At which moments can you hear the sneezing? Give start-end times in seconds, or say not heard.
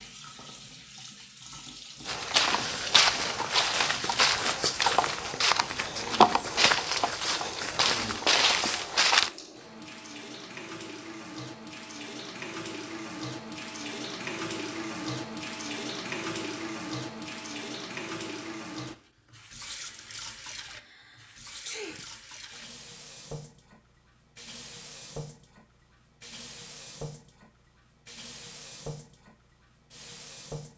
20.7-22.1.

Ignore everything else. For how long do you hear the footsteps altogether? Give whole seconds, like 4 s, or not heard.
7 s.